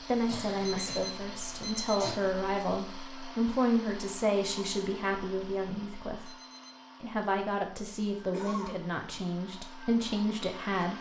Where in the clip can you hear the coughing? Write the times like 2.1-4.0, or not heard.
0.2-2.1, 8.3-8.8.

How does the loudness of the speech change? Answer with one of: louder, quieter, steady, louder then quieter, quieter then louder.
steady.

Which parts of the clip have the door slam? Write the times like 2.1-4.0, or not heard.
not heard.